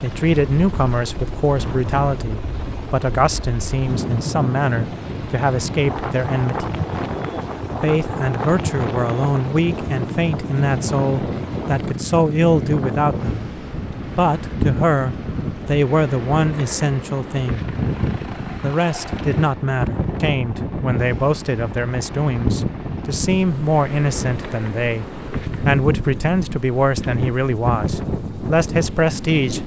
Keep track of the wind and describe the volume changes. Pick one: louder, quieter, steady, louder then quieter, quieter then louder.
steady.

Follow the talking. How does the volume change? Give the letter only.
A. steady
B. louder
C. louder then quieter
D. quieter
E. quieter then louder
A.